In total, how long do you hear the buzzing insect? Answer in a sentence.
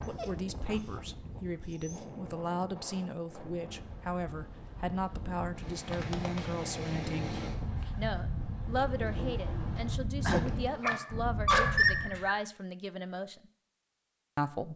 The buzzing insect can't be heard in this clip.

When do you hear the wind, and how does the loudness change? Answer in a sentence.
You can hear the wind from 0.0 to 12.3 s, getting louder.